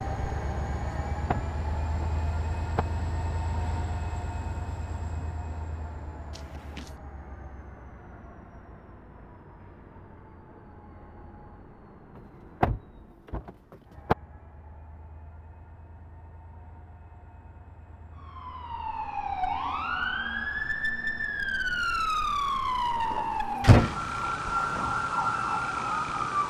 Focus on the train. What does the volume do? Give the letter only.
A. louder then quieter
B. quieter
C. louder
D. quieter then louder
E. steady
B.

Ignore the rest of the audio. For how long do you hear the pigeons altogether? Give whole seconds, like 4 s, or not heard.
not heard.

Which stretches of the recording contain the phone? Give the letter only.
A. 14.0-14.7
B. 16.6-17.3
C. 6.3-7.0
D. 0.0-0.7
C.